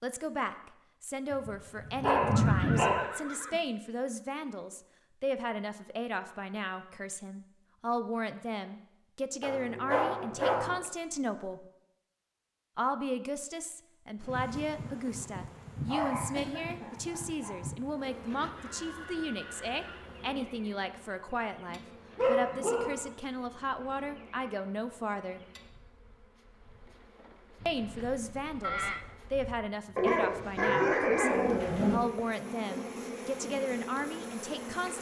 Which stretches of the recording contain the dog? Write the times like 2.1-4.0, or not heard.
1.3-3.1, 9.4-10.8, 15.8-17.6, 21.6-23.1, 29.9-31.9.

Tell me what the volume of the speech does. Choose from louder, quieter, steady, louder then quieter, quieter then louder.
steady.